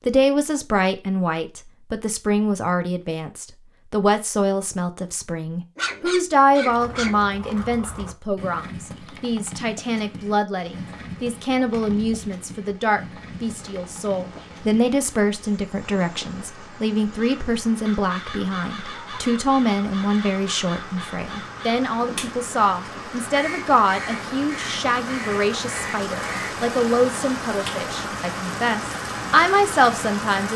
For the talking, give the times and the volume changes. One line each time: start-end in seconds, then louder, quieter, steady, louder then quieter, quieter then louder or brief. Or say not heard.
0.1-30.5 steady.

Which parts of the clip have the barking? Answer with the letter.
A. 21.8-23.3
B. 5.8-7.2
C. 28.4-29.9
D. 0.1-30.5
B.